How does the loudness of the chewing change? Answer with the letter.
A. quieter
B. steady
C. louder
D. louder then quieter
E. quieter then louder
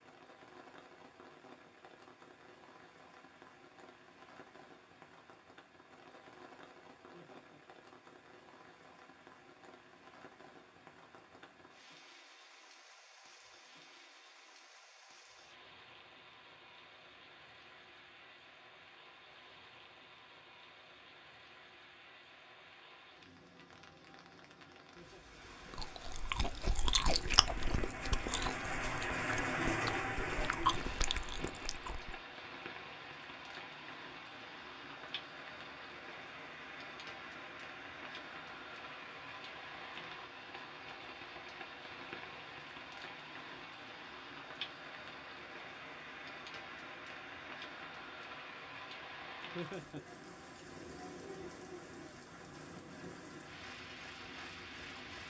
E.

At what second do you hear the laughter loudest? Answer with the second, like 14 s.
50 s.